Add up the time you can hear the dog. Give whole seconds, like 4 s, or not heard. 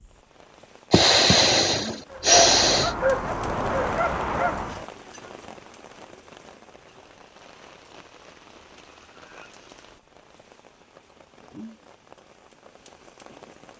3 s.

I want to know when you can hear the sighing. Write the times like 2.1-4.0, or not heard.
0.9-3.0.